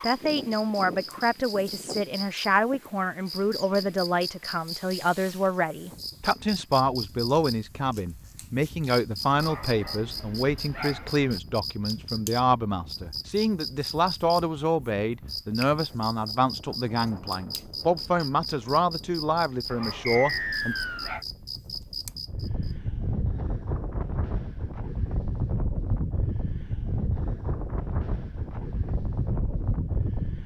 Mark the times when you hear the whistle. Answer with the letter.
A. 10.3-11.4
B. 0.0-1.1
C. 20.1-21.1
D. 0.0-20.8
C.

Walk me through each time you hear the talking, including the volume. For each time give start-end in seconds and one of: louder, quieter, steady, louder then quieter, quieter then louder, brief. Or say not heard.
0.0-20.8 steady.